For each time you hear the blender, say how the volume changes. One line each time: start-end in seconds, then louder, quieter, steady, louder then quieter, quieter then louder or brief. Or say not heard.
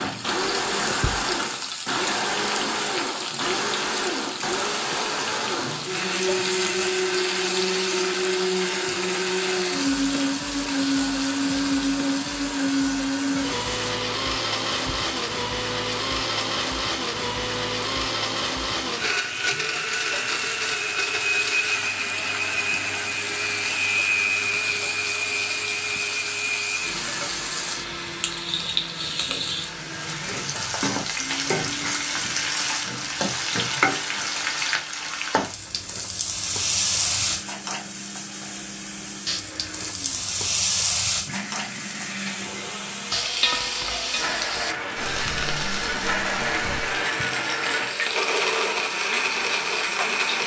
0.0-50.4 quieter then louder.